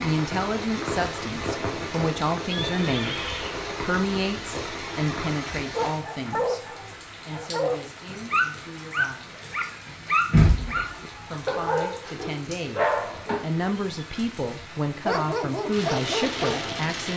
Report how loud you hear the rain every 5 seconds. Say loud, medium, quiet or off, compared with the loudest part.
loud, medium, loud, loud.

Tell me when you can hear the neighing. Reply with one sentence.
The neighing can be heard from 2.5 to 3.6 s.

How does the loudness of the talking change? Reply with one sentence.
The volume of the talking goes down, then up.